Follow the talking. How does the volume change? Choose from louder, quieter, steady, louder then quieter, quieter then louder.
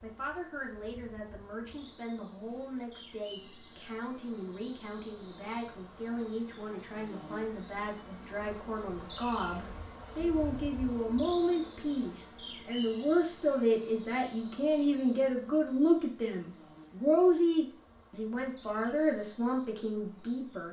louder.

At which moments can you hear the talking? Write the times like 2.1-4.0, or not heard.
0.0-20.6.